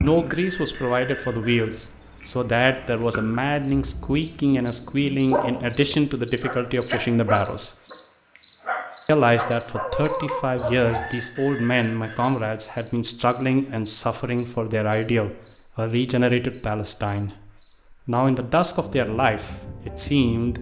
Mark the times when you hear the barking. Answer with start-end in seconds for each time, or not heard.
3.7-11.1.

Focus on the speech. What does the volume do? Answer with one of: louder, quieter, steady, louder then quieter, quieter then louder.
steady.